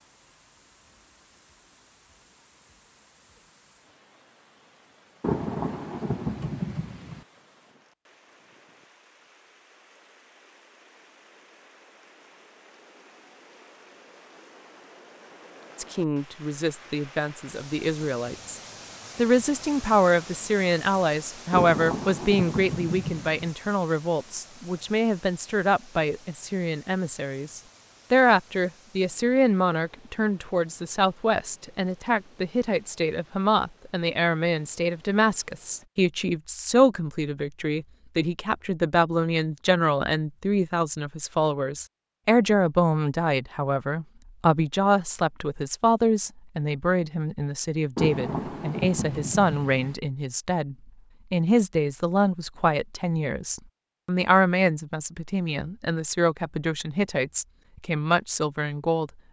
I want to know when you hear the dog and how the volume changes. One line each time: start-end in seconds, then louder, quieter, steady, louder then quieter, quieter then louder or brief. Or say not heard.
not heard.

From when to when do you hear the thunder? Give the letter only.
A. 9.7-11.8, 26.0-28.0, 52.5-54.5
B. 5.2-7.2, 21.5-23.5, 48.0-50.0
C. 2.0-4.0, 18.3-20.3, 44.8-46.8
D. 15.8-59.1
B.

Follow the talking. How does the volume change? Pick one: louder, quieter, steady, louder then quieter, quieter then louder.
steady.